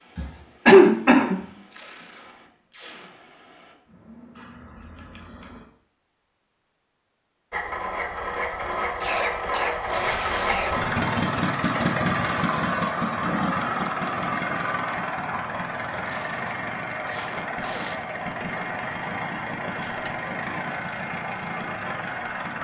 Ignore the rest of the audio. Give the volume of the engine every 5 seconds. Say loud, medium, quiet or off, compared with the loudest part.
off, loud, loud, medium, medium.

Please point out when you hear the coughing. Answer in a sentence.
You can hear the coughing from 0.1 to 1.4 s, from 9.0 to 10.7 s and from 19.8 to 20.4 s.